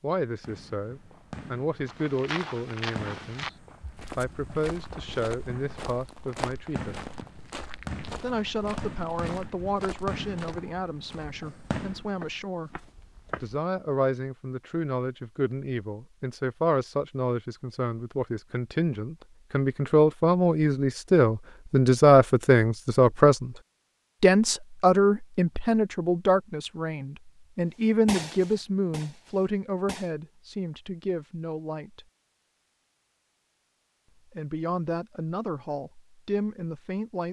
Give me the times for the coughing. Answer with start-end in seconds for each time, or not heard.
not heard.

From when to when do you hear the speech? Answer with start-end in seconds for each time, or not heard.
0.0-3.5, 4.2-7.0, 8.2-12.8, 13.4-23.5, 24.2-32.0, 34.3-37.2.